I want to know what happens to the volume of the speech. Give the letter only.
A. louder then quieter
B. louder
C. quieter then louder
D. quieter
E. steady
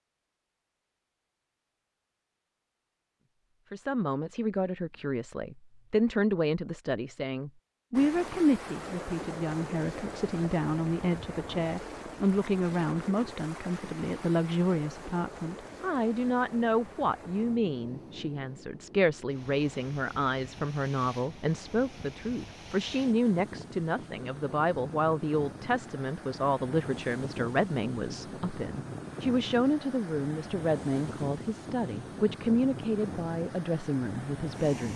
E.